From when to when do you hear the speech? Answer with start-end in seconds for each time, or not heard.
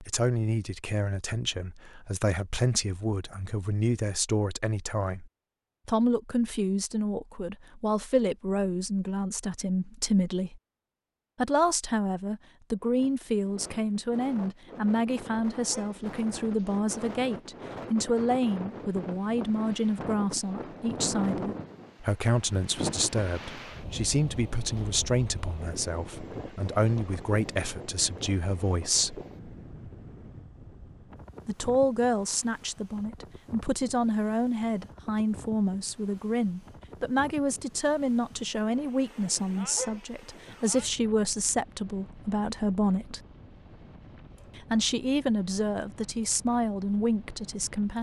0.0-10.6, 11.3-29.2, 31.4-43.2, 44.5-47.9.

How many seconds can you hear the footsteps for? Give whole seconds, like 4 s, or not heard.
not heard.